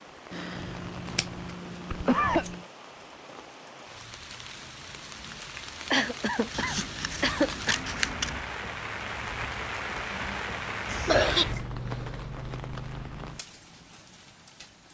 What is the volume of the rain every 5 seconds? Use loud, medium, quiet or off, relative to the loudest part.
medium, loud, loud.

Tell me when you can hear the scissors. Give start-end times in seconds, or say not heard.
0.3-2.6, 6.5-8.4, 10.8-11.7.